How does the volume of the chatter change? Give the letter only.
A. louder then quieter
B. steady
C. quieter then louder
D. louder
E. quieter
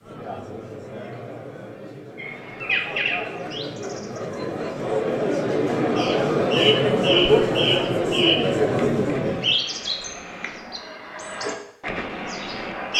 D.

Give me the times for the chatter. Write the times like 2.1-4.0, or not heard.
0.0-9.6.